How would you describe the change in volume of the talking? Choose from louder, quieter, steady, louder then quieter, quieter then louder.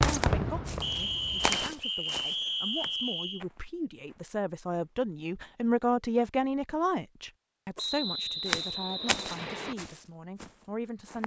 louder then quieter.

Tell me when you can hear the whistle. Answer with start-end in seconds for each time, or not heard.
0.8-3.5, 7.8-9.8.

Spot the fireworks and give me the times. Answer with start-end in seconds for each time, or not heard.
0.0-1.6.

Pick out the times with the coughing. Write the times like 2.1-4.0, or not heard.
not heard.